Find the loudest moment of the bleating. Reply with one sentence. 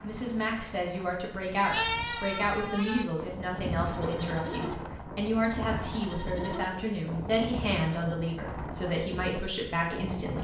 The volume of the bleating peaks at 2 seconds.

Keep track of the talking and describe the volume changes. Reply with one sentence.
The volume of the talking stays about the same.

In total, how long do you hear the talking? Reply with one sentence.
The talking can be heard for 10 seconds in total.